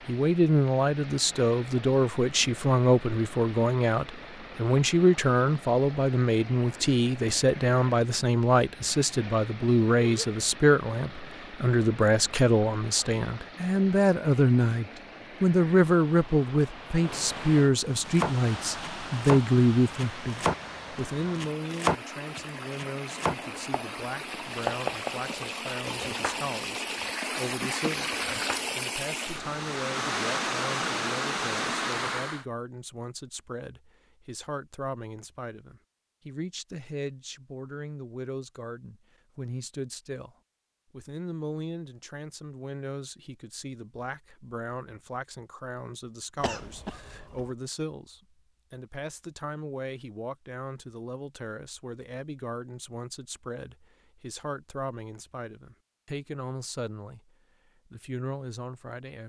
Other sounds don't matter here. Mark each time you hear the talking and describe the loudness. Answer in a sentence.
You can hear the talking from 0.1 to 59.2 s, getting quieter.